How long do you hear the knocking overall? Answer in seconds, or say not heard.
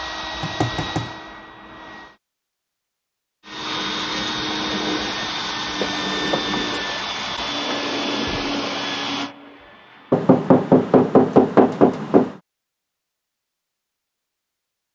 4 s.